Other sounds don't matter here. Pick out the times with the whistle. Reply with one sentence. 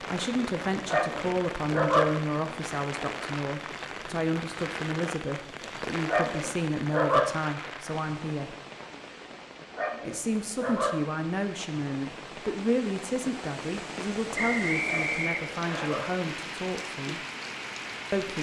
The whistle can be heard from 14.3 to 15.9 s.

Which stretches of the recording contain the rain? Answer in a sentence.
You can hear the rain from 0.0 to 18.3 s.